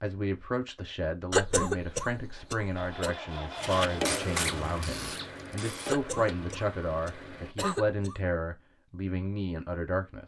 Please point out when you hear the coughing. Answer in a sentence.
You can hear the coughing from 1.3 to 3.1 s and from 5.8 to 8.2 s.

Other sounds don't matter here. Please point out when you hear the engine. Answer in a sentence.
You can hear the engine from 2.8 to 7.5 s.